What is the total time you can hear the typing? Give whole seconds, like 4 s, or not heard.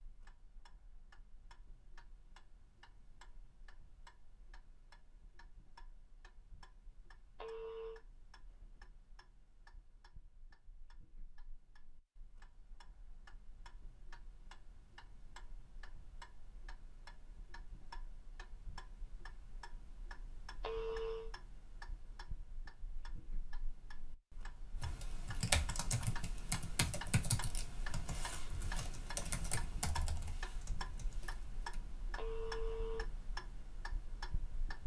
7 s.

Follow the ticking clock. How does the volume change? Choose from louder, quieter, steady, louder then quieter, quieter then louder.
louder.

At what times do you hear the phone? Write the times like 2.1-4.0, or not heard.
7.3-8.0, 20.6-21.3, 32.1-33.0.